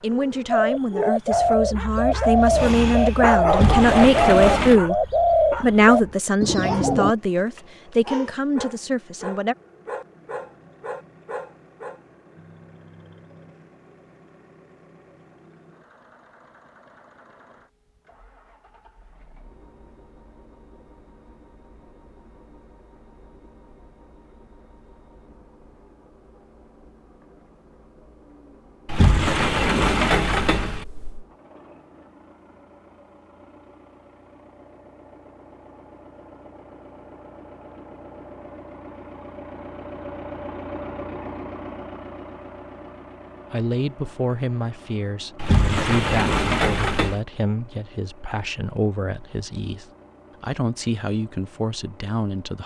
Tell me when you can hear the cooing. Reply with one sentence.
The cooing can be heard from 0.5 to 7.2 s.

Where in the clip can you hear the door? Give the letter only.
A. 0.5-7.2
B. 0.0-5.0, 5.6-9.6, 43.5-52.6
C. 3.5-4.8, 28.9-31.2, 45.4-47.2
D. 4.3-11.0
C.